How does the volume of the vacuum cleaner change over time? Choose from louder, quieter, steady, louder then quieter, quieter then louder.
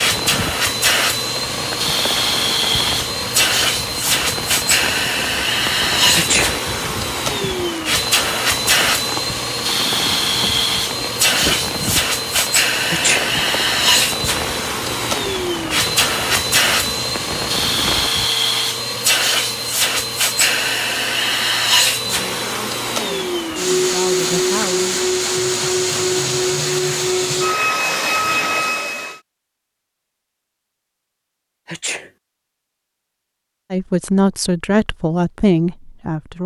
steady.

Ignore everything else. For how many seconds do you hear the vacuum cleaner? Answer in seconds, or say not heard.
29 s.